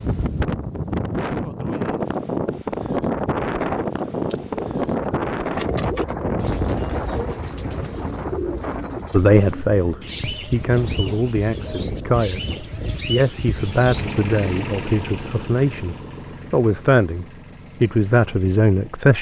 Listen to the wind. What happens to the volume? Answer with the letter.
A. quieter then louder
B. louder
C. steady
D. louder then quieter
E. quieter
E.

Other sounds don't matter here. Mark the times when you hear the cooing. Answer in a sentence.
You can hear the cooing from 4.0 to 14.2 s.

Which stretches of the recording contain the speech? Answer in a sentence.
The speech can be heard from 9.1 to 19.1 s.